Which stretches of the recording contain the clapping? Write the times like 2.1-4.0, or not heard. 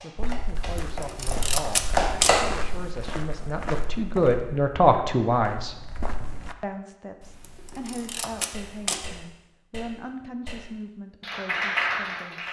0.0-2.4, 8.5-12.4.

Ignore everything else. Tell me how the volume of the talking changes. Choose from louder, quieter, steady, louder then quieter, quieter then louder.
louder then quieter.